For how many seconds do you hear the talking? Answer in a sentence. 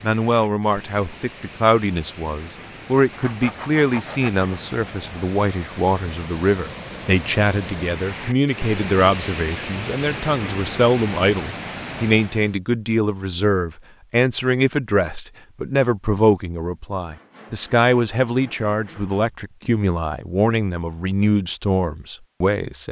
You can hear the talking for 23 seconds altogether.